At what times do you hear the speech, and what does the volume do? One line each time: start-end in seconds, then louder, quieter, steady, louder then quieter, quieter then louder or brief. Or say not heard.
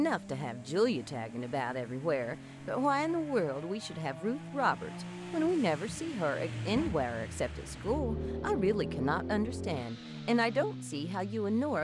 0.0-11.7 steady.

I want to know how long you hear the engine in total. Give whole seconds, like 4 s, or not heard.
12 s.